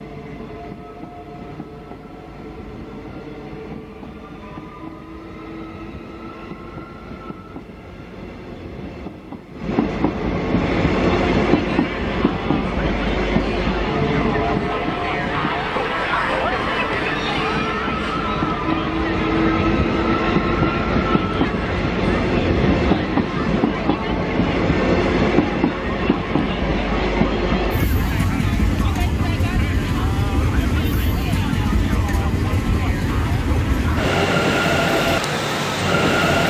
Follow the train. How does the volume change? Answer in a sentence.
The loudness of the train goes up.